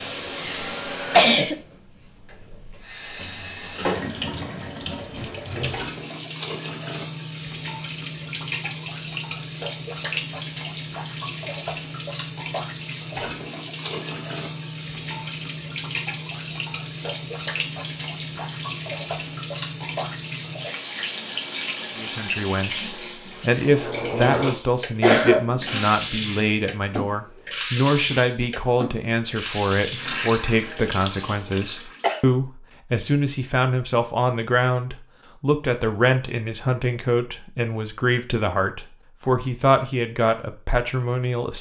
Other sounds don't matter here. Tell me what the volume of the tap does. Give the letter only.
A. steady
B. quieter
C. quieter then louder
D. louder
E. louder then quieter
A.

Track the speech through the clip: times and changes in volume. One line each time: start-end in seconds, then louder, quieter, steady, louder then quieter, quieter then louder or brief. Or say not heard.
21.9-41.5 steady.